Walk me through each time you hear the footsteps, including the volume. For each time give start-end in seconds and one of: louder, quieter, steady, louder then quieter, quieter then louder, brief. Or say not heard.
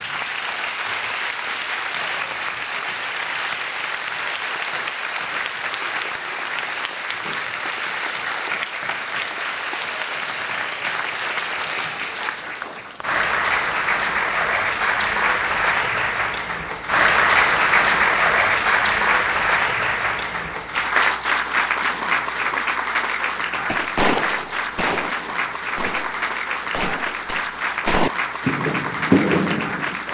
not heard.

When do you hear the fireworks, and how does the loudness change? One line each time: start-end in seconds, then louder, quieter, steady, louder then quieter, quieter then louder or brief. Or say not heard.
23.6-30.0 quieter then louder.